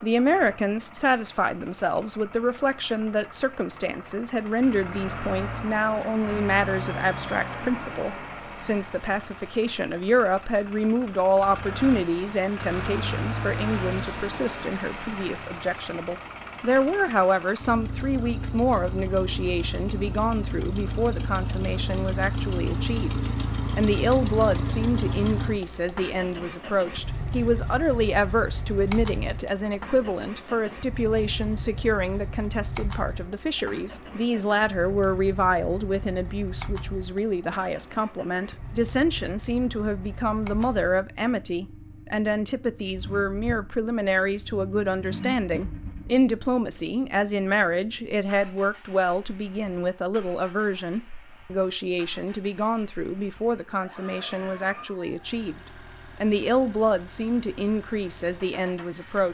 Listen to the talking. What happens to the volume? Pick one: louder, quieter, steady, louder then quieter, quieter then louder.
steady.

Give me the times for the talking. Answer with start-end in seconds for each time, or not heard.
0.0-23.1, 23.8-55.6, 56.2-59.3.